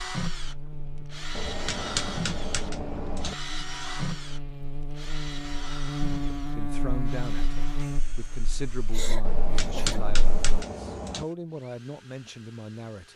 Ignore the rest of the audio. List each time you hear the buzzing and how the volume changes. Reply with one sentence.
You can hear the buzzing from 0.1 to 10.6 s, getting louder then quieter.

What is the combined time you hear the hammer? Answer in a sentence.
You can hear the hammer for 4 seconds altogether.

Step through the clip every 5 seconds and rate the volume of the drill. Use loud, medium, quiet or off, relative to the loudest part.
loud, medium, quiet.